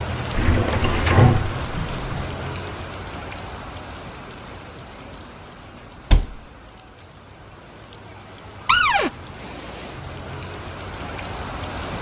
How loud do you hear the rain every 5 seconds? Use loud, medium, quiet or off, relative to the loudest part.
loud, medium, loud.